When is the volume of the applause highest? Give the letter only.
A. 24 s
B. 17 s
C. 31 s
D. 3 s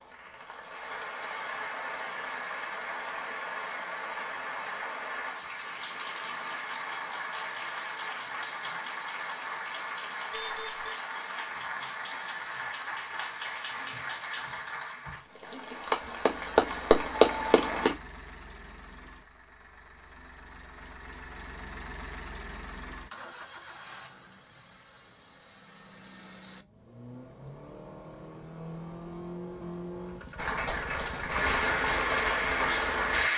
B.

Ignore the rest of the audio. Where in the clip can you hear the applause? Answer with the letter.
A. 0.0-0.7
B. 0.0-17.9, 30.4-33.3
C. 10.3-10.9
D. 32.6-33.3
B.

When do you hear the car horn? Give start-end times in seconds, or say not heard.
10.3-10.9.